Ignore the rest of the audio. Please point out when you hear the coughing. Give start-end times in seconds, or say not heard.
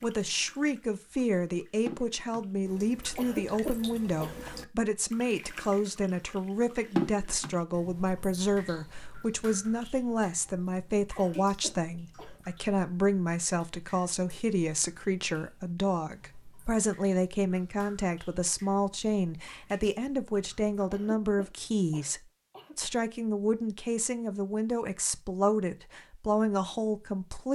3.1-4.4, 11.2-12.4, 20.9-22.8.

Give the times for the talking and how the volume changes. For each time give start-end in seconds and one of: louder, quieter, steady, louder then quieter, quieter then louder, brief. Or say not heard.
0.0-27.5 steady.